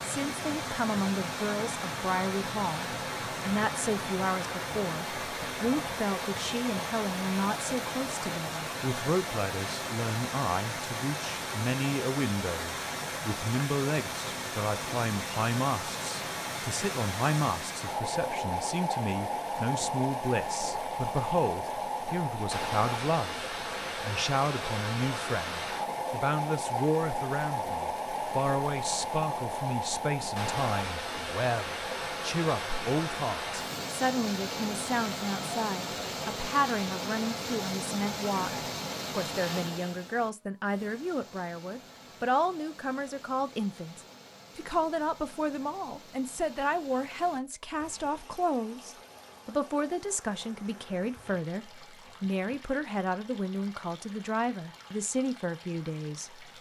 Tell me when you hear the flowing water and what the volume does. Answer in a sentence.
You can hear the flowing water from 0.0 to 56.5 s, getting quieter.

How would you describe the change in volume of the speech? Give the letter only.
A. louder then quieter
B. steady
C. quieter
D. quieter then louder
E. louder
B.